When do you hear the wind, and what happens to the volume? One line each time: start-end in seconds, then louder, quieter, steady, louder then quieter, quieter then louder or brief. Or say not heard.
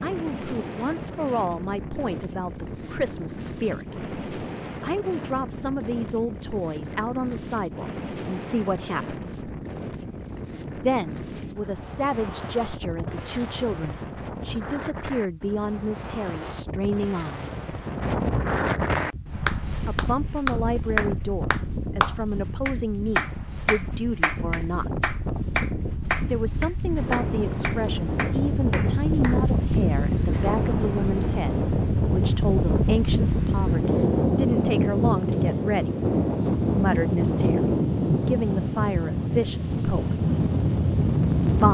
0.0-41.6 louder.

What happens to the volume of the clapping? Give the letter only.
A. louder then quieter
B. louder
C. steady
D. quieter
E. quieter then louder
D.